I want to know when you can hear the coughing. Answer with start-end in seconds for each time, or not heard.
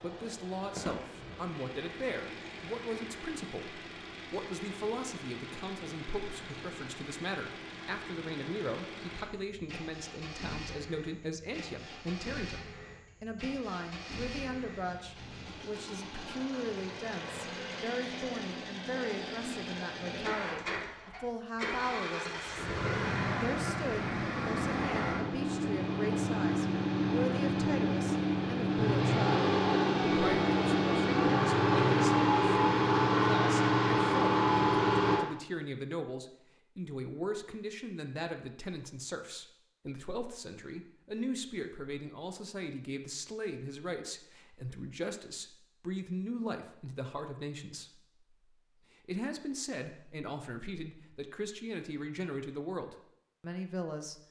not heard.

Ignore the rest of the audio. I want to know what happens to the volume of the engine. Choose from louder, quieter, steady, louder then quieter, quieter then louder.
louder.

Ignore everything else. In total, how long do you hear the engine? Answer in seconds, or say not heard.
35 s.